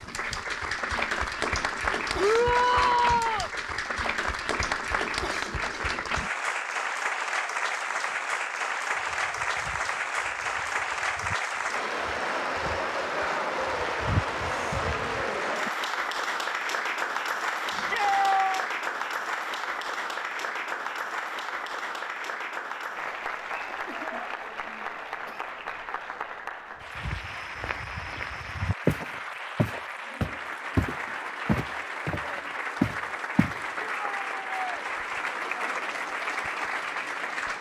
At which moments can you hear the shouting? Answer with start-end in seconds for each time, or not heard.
2.1-3.5, 17.7-18.6, 33.8-34.8.